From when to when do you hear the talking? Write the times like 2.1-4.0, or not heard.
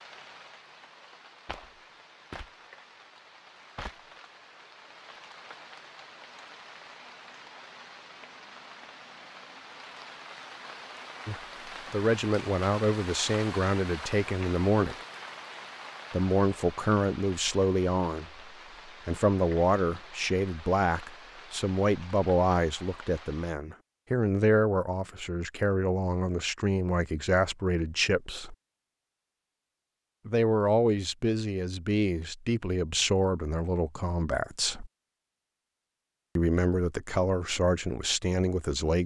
11.2-14.9, 16.1-28.6, 30.2-34.9, 36.4-39.0.